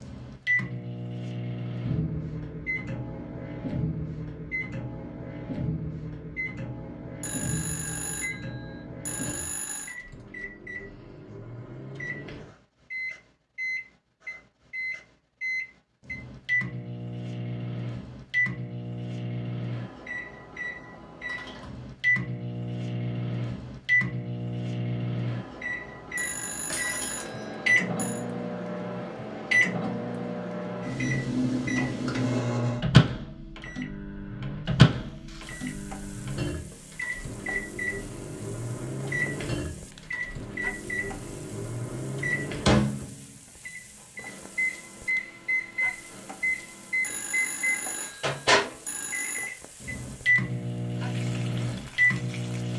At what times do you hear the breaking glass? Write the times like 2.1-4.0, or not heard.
26.7-27.5.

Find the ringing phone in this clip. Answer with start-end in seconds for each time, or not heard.
7.2-9.9, 26.1-28.2, 47.0-49.5.